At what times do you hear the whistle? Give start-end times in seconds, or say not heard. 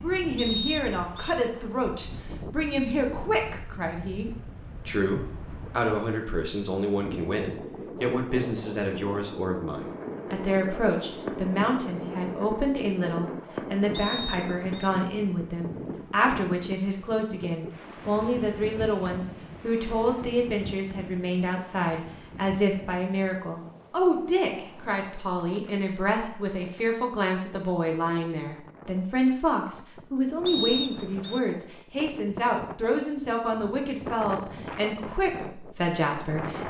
0.3-1.4, 13.9-14.9, 30.4-31.4.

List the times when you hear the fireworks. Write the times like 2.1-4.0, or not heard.
9.7-14.8.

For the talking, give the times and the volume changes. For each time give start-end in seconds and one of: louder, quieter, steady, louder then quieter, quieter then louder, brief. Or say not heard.
0.0-36.6 steady.